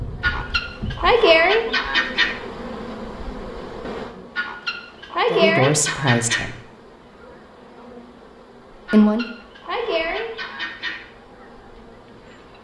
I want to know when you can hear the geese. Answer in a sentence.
You can hear the geese from 0.2 to 2.4 s, from 4.3 to 6.5 s and from 8.8 to 11.0 s.